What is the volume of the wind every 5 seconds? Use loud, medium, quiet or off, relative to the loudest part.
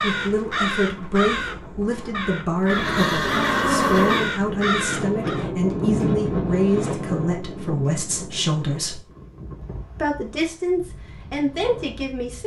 medium, loud, quiet.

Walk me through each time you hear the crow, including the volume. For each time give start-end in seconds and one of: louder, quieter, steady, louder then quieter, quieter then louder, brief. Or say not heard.
0.0-5.5 quieter then louder.